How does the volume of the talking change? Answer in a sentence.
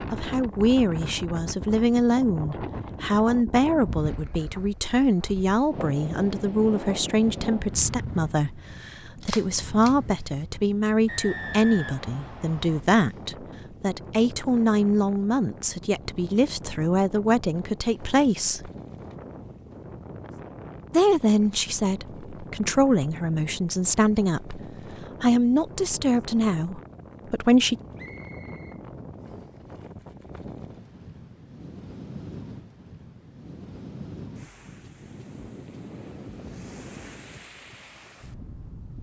The volume of the talking stays about the same.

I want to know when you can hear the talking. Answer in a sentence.
The talking can be heard from 0.1 to 18.7 s and from 20.9 to 27.8 s.